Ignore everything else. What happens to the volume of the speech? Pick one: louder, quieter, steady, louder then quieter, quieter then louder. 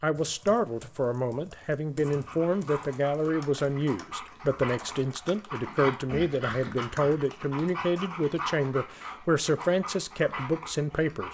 steady.